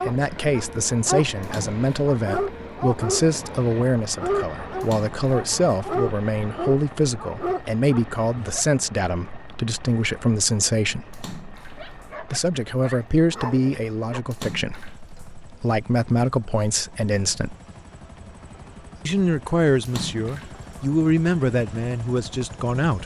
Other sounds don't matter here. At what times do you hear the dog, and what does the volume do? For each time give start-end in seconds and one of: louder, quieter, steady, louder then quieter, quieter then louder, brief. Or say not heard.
0.0-8.7 steady
11.8-14.2 brief.